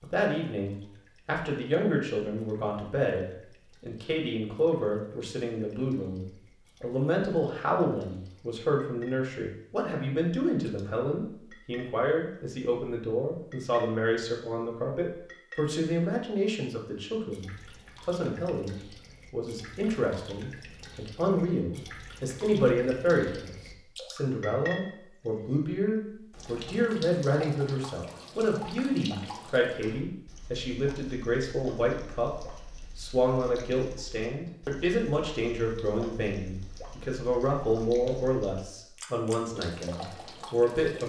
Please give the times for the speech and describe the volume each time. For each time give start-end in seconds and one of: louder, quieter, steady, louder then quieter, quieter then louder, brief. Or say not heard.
0.0-41.0 steady.